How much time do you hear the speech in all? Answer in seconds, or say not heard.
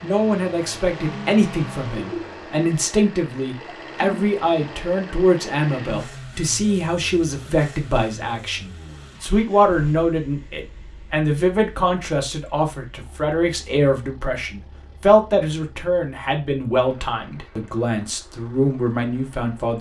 20 s.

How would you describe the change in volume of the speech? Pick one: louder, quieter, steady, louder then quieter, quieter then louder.
steady.